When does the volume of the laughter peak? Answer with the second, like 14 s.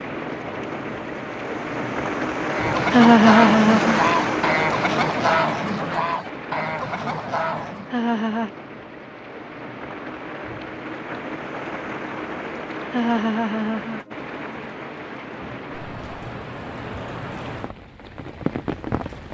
3 s.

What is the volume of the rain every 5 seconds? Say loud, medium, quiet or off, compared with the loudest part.
loud, medium, medium, medium.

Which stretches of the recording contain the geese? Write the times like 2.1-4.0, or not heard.
2.5-8.0.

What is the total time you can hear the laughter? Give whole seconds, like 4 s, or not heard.
3 s.